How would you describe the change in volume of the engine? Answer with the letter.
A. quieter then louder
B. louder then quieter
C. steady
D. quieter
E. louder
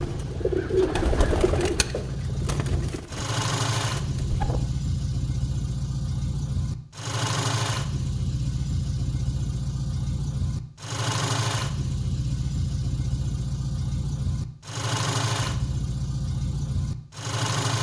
C.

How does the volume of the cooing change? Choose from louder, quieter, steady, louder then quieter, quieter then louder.
quieter.